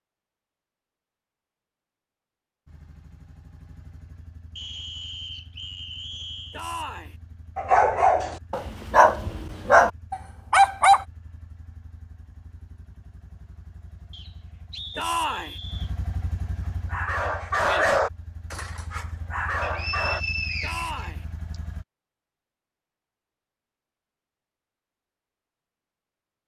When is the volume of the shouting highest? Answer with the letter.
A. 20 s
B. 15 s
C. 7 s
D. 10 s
B.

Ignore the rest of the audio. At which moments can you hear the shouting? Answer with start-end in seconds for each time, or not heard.
6.5-7.2, 14.9-15.6, 20.6-21.2.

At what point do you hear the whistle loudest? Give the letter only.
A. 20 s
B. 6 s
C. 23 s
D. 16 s
A.